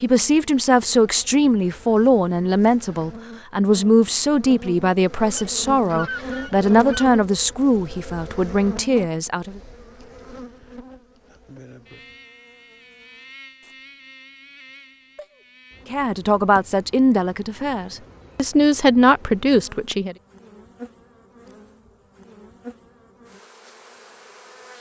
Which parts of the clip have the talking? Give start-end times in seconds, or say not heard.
0.0-9.6, 15.9-20.1.